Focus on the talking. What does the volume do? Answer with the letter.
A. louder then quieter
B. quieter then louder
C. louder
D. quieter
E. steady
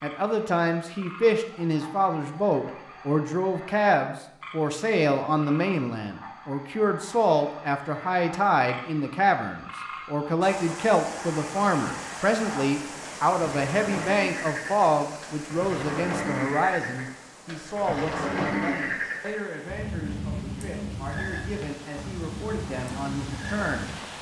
D.